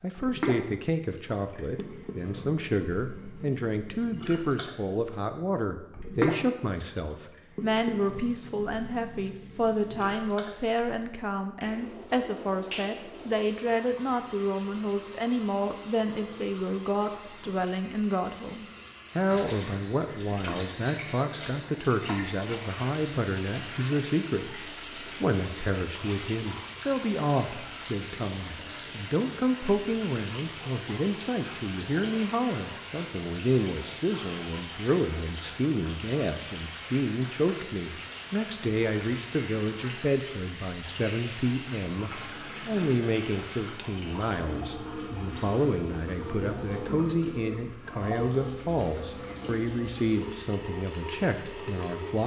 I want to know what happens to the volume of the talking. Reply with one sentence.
The loudness of the talking stays about the same.